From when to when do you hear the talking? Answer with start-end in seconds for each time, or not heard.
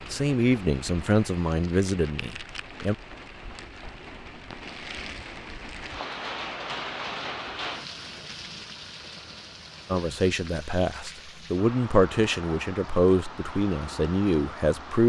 0.1-3.0, 9.9-15.0.